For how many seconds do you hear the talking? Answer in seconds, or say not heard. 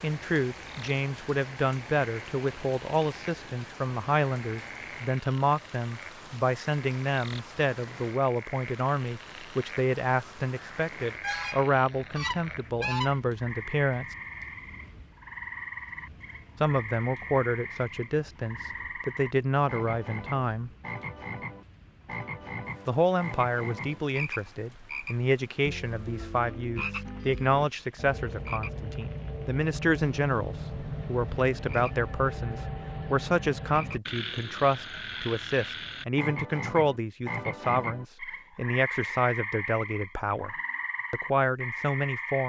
38 s.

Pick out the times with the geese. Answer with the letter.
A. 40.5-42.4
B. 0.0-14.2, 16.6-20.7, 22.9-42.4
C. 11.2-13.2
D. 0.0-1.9
C.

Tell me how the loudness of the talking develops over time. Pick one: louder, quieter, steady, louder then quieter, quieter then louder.
steady.